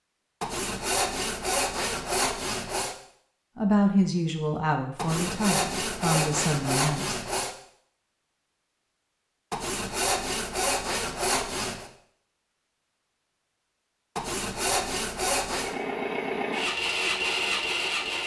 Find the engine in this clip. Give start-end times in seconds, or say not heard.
15.4-18.2.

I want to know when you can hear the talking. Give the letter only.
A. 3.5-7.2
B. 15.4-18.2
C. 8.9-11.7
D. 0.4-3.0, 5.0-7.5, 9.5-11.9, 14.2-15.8
A.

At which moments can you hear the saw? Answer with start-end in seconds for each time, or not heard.
0.4-3.0, 5.0-7.5, 9.5-11.9, 14.2-15.8.